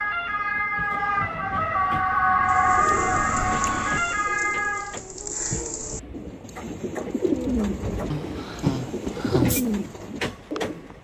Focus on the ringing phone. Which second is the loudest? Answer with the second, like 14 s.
9 s.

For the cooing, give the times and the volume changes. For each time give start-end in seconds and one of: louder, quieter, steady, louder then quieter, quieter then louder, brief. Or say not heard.
2.5-10.9 louder.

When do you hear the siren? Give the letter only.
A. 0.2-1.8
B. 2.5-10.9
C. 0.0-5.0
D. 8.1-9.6
C.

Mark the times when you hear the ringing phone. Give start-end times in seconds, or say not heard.
8.1-9.6.